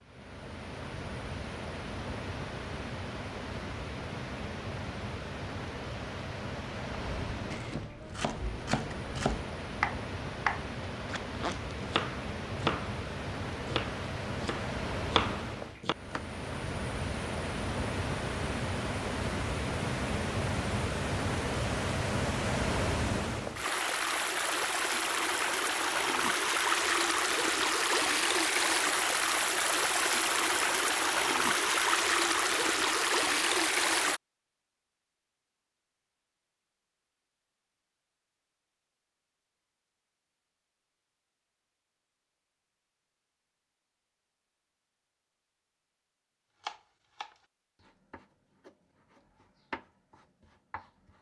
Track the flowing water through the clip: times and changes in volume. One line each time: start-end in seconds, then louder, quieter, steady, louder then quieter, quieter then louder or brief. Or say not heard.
0.0-34.2 louder.